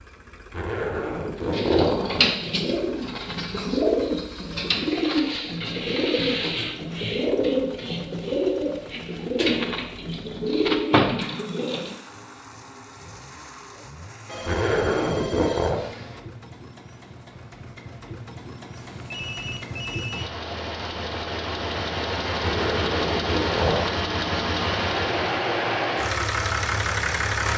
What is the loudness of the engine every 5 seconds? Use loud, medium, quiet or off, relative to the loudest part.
quiet, quiet, quiet, quiet, loud, loud.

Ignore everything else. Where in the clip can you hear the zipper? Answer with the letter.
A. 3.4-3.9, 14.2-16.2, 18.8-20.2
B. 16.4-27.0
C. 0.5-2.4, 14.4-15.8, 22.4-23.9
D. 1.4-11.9
C.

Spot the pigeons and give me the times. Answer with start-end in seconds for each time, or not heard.
1.4-11.9.